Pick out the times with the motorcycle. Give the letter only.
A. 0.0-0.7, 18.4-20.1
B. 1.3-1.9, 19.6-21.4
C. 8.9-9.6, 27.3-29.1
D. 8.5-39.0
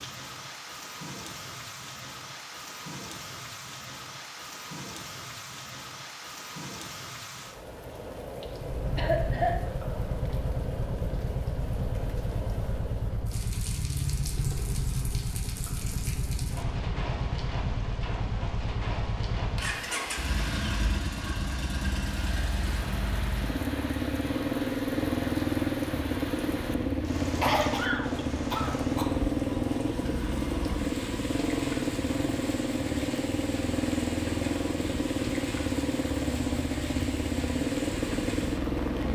D.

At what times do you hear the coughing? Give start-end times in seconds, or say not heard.
8.9-9.6, 27.3-29.1.